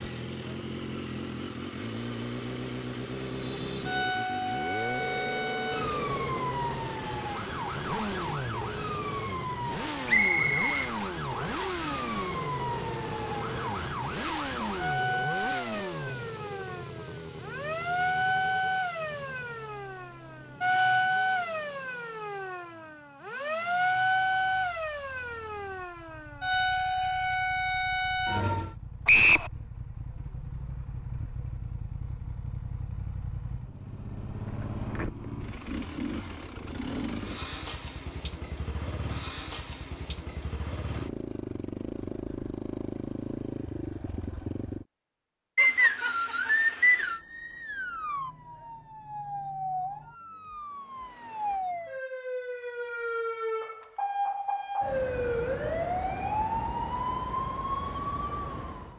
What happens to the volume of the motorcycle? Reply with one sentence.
The loudness of the motorcycle goes down, then up.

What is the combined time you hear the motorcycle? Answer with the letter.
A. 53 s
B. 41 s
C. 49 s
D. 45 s
D.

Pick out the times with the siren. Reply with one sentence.
The siren can be heard from 3.4 to 28.8 s and from 46.8 to 58.9 s.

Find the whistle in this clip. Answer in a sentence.
You can hear the whistle from 10.1 to 11.6 s, from 29.1 to 29.5 s and from 45.5 to 47.2 s.